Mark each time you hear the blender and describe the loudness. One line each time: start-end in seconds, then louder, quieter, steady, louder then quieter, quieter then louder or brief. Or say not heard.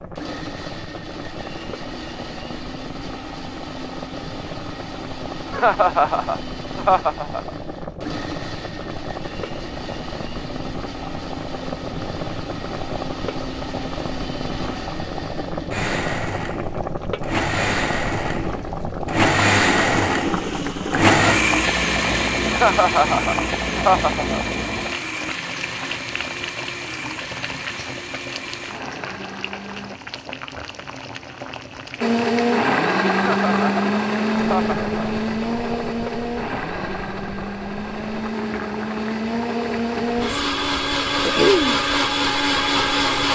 0.1-29.9 louder then quieter
32.0-43.3 quieter then louder.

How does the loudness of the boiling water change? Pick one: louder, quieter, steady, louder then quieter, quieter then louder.
louder then quieter.